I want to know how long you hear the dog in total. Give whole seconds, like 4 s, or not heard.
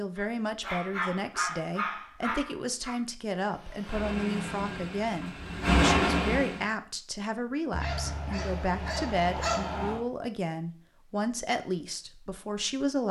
5 s.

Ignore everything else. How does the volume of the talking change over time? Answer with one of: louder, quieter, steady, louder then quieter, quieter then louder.
steady.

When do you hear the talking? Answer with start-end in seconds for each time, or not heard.
0.0-13.0.